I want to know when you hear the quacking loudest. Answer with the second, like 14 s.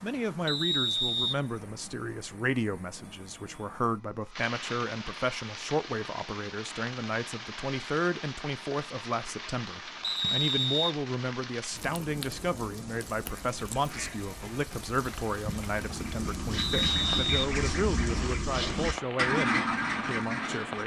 19 s.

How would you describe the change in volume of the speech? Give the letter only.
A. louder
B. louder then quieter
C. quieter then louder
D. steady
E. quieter
D.